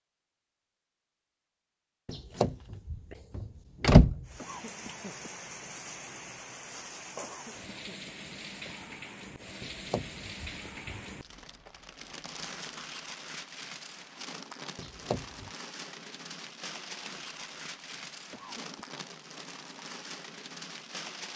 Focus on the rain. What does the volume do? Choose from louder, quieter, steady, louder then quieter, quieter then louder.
steady.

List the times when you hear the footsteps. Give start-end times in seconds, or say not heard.
not heard.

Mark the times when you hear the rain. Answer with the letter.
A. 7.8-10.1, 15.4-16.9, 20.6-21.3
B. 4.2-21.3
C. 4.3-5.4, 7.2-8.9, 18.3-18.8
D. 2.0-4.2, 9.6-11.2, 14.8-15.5
B.